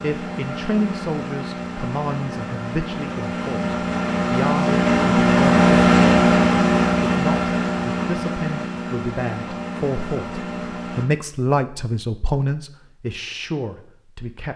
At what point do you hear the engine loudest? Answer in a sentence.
The loudest moment of the engine is at 6 seconds.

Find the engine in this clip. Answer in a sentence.
The engine can be heard from 0.0 to 11.1 s.